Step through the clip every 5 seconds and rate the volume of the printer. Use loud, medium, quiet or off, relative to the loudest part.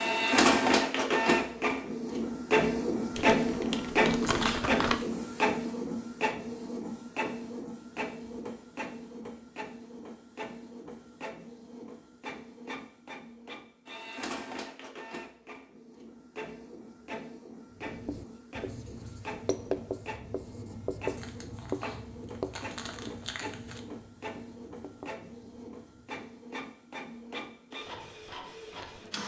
loud, medium, quiet, quiet, quiet, quiet.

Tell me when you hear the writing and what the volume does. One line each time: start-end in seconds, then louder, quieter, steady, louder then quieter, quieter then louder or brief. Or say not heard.
17.8-26.4 louder then quieter.